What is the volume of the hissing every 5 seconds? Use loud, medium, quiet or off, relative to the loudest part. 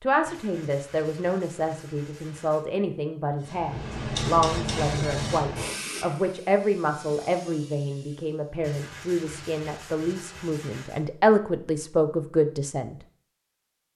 loud, medium, off.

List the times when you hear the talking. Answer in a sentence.
The talking can be heard from 0.0 to 12.9 s.